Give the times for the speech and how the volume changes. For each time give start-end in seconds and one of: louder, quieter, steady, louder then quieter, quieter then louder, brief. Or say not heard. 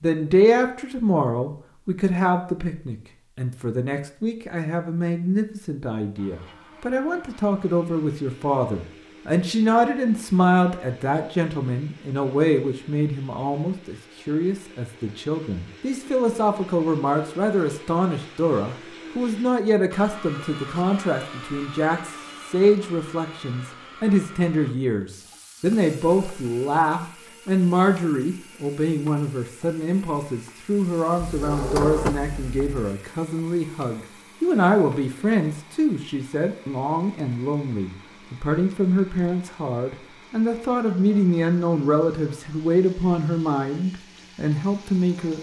0.0-45.3 steady.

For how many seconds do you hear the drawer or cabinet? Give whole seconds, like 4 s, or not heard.
2 s.